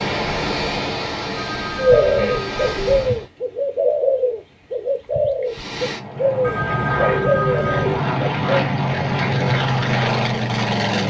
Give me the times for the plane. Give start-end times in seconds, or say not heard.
0.0-3.2, 5.5-11.0.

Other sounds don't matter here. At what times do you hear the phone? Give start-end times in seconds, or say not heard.
1.4-3.2, 6.4-8.1.